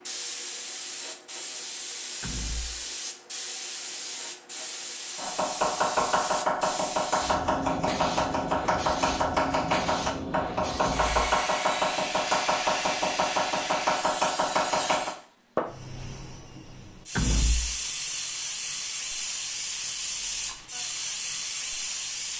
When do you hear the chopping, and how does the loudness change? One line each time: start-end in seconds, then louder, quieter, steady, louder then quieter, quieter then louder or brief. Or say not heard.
5.2-15.2 steady.